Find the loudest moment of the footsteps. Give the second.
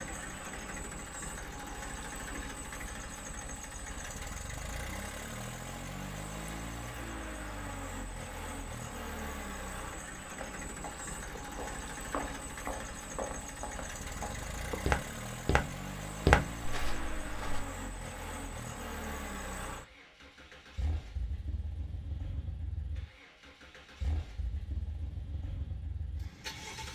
16 s.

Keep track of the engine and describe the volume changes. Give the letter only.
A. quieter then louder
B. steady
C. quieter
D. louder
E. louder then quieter
C.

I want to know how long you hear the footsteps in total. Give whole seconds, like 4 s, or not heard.
7 s.